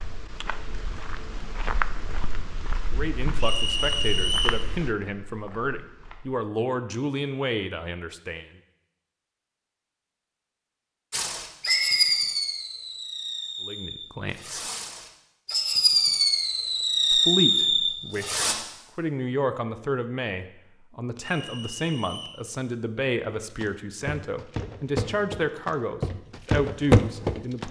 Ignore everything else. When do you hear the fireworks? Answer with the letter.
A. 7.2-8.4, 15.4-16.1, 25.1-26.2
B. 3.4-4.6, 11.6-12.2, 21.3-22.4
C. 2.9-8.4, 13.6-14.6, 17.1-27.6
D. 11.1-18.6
D.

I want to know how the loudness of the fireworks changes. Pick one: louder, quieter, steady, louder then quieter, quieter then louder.
quieter then louder.